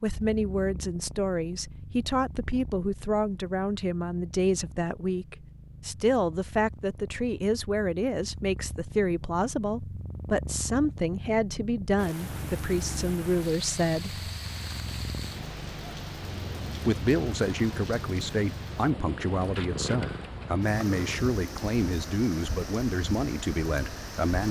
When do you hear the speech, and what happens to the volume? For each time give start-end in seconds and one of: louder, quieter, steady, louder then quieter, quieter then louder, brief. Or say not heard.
0.0-14.3 steady
16.9-24.4 steady.